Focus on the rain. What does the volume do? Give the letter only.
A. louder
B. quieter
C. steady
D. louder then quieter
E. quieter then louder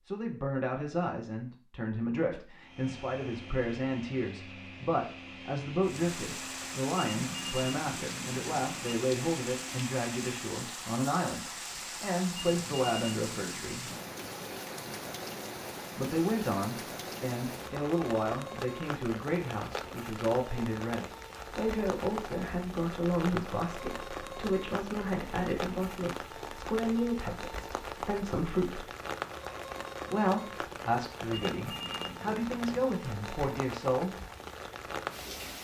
C.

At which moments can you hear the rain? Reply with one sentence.
The rain can be heard from 5.8 to 35.6 s.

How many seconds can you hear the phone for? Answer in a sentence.
You can hear the phone for 5 seconds altogether.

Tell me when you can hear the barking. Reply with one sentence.
The barking can't be heard in this clip.